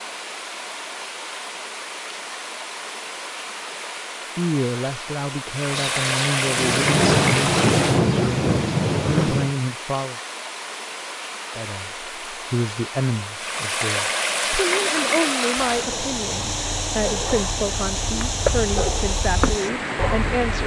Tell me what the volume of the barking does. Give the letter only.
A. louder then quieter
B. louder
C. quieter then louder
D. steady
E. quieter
B.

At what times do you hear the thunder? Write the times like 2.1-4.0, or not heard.
5.8-9.6.